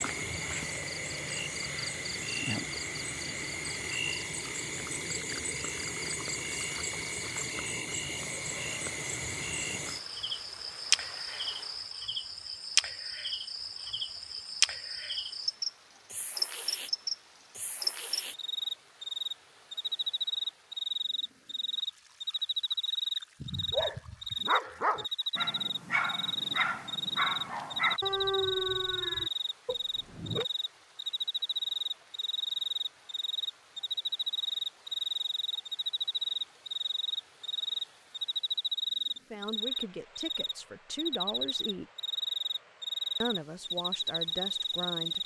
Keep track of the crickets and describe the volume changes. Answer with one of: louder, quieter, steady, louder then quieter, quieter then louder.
steady.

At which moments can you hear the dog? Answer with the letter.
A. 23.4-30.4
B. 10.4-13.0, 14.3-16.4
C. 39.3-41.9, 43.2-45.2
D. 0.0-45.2
A.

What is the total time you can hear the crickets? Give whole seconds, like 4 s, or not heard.
45 s.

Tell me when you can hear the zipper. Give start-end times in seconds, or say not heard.
not heard.